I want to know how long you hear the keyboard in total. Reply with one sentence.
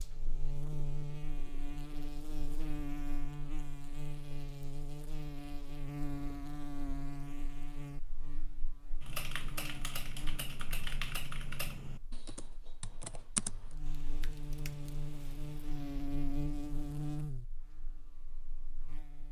The keyboard can be heard for 7 seconds in total.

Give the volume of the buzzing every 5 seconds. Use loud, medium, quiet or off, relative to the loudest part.
loud, loud, medium, loud.